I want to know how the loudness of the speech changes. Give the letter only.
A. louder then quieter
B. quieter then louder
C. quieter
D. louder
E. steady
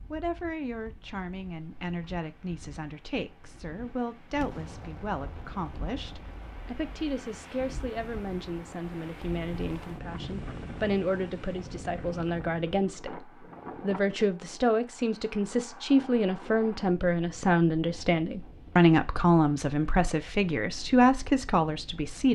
D.